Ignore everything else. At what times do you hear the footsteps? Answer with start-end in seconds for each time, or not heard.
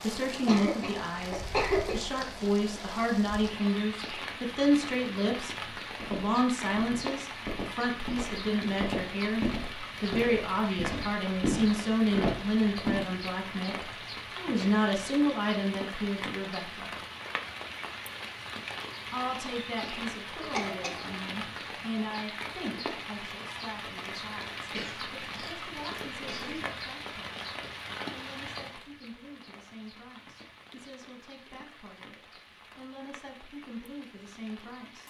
6.0-13.1.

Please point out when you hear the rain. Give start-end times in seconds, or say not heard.
0.0-35.0.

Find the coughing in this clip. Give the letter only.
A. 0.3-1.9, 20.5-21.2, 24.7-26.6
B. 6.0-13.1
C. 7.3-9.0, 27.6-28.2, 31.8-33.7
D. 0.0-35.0
A.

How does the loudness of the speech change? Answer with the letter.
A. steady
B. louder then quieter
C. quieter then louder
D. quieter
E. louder
D.